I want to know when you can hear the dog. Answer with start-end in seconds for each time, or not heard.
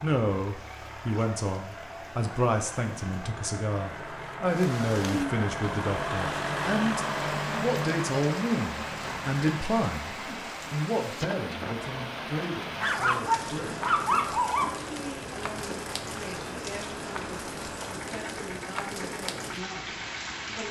12.8-14.7.